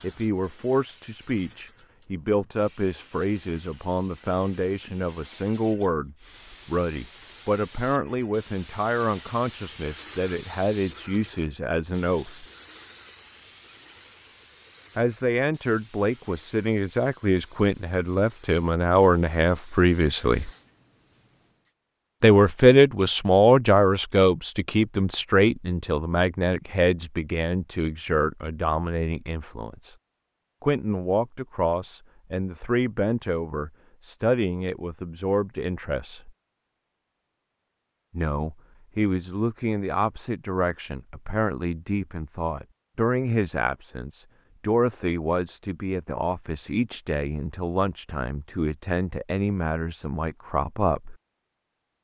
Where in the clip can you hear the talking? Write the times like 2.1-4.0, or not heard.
0.0-12.4, 14.9-20.5, 22.2-29.9, 30.6-36.3, 38.1-51.1.